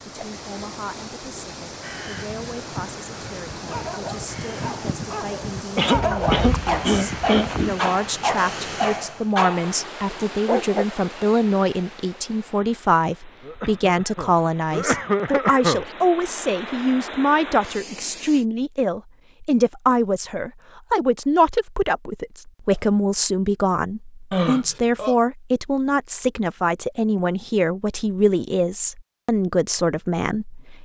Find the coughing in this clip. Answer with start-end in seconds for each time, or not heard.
5.8-7.9, 13.4-15.9, 24.3-25.1.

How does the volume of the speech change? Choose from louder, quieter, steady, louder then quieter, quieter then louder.
louder.